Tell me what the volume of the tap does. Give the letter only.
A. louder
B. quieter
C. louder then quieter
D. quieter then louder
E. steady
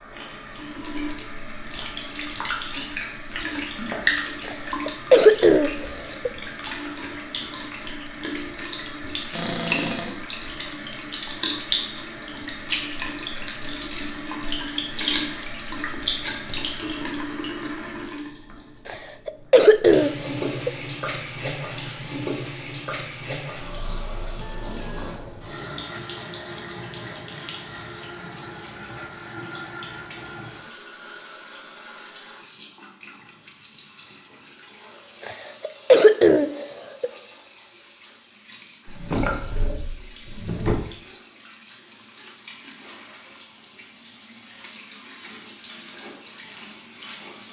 B.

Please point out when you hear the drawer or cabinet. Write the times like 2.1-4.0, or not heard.
9.3-10.2, 38.9-40.8.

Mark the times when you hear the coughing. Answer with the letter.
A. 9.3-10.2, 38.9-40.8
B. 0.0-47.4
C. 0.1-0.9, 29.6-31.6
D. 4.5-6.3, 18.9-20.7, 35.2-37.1
D.